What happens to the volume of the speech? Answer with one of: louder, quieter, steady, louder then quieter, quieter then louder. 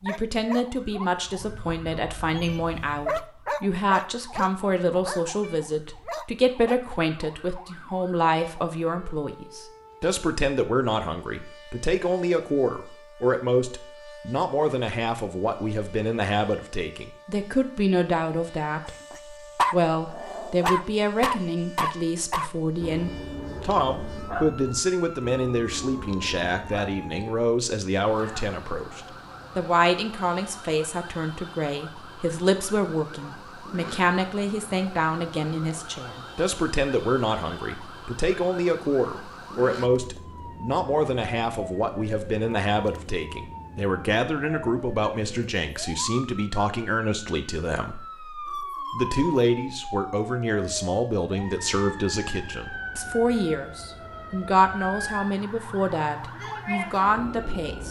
steady.